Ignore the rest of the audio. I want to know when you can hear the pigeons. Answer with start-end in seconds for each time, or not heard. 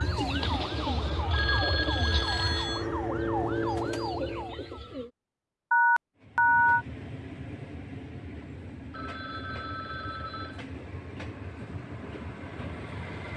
0.0-5.1.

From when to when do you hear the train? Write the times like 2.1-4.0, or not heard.
6.2-13.3.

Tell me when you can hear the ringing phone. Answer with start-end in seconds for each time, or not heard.
0.4-2.9, 5.7-6.8, 8.9-10.6.